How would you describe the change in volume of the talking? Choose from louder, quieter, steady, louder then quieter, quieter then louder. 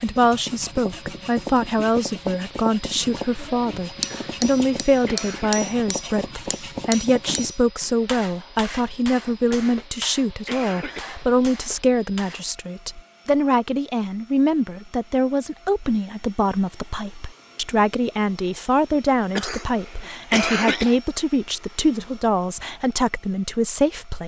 steady.